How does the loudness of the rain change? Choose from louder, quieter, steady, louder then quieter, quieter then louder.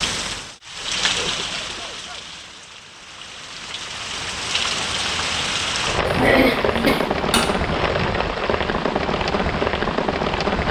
quieter then louder.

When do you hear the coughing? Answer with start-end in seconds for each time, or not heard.
1.1-2.2, 6.0-7.7.